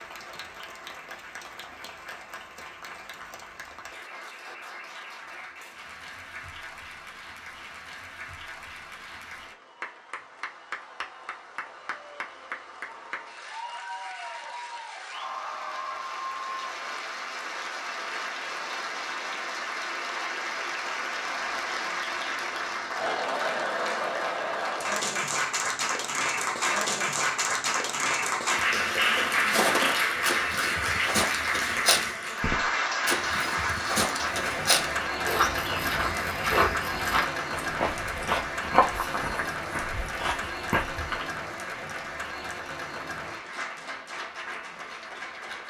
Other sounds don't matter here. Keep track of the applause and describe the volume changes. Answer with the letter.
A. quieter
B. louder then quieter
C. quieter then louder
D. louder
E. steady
B.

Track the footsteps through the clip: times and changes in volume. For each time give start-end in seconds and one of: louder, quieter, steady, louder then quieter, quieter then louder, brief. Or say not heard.
29.1-41.3 steady.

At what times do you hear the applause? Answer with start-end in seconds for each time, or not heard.
0.0-45.6.